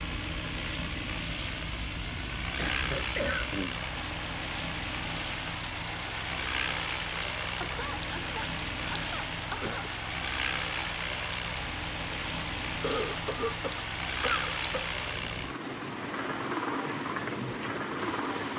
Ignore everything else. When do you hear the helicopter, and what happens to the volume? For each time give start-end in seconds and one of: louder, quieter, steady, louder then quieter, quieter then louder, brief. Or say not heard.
0.0-18.5 steady.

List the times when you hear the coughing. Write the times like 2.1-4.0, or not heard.
2.5-3.8, 7.6-9.9, 12.8-14.9.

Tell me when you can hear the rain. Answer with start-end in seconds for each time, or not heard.
0.0-18.5.